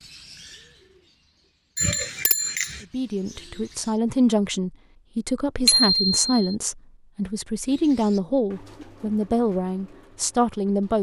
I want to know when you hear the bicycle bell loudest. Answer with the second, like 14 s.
6 s.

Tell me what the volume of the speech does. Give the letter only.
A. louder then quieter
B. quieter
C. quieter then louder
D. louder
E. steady
E.